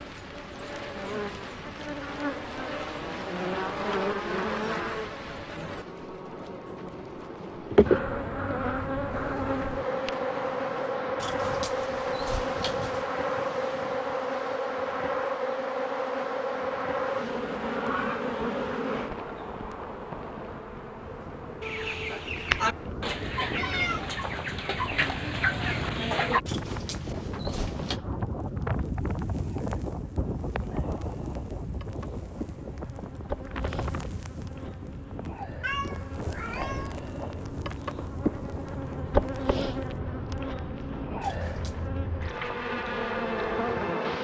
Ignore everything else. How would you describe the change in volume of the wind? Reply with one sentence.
The loudness of the wind goes up, then down.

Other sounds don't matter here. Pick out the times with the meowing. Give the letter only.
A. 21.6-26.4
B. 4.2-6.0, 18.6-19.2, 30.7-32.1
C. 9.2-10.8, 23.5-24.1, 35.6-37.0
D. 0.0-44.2
C.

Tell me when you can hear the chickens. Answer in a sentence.
You can hear the chickens from 21.6 to 26.4 s.